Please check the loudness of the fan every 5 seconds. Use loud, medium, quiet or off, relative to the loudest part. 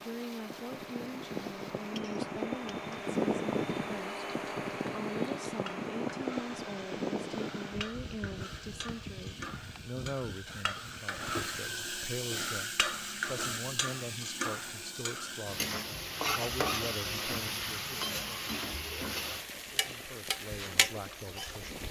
loud, loud, quiet, quiet, quiet.